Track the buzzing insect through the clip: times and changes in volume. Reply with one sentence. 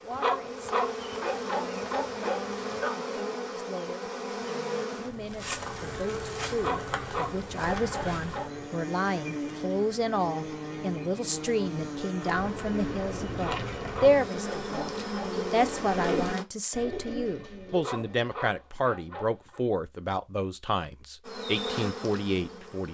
The buzzing insect can be heard from 0.0 to 16.4 s, at a steady volume; and briefly from 21.2 to 22.8 s.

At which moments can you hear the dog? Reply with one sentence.
You can hear the dog from 0.1 to 3.0 s, from 6.5 to 8.5 s, from 13.3 to 15.4 s and from 17.7 to 19.6 s.